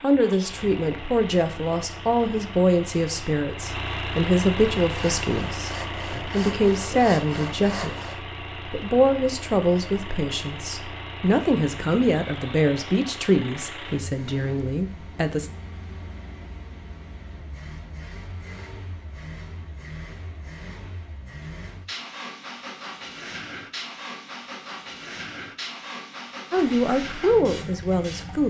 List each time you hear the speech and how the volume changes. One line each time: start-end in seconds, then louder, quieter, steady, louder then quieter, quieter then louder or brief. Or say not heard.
0.0-15.5 steady
26.5-28.4 brief.